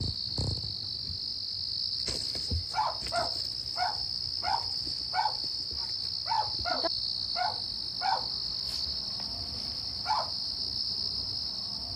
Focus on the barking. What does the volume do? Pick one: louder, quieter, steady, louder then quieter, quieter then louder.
quieter.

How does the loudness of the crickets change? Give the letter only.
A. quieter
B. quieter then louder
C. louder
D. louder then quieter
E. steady
E.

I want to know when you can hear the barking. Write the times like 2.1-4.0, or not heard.
2.2-10.3.